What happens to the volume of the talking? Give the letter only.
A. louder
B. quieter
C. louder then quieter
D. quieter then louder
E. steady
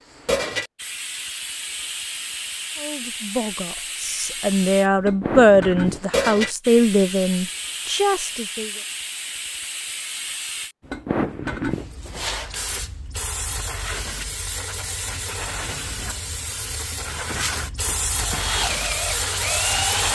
C.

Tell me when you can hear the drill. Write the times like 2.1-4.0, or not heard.
18.1-20.1.